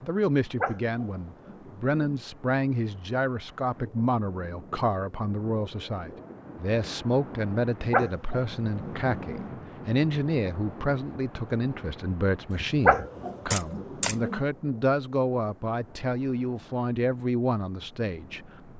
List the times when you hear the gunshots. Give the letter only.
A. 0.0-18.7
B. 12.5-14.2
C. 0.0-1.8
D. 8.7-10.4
B.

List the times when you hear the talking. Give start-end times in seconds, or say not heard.
0.0-18.7.